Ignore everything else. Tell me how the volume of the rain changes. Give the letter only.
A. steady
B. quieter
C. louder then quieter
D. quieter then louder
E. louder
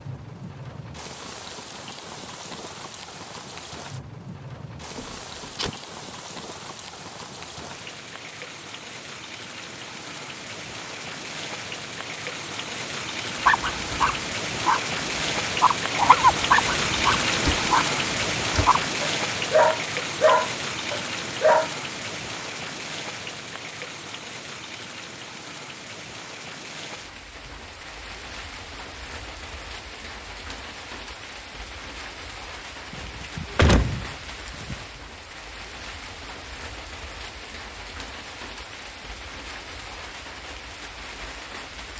C.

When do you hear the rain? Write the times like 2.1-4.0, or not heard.
0.0-41.9.